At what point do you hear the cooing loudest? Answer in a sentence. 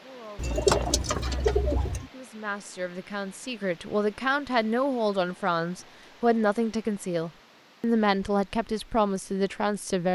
The volume of the cooing peaks at 1 second.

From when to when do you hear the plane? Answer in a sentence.
The plane can't be heard in this clip.